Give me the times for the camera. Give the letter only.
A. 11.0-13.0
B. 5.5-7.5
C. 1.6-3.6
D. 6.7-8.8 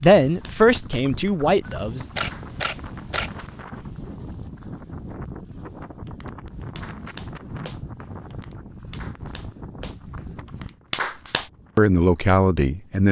C.